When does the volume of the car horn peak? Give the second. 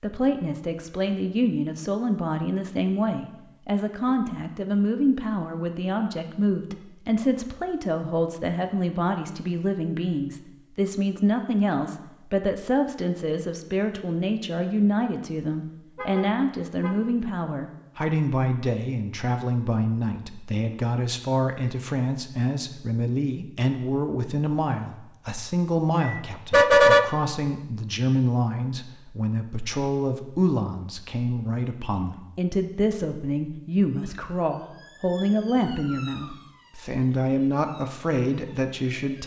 27 s.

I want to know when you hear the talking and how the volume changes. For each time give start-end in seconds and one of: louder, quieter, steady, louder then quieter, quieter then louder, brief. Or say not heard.
0.0-39.2 steady.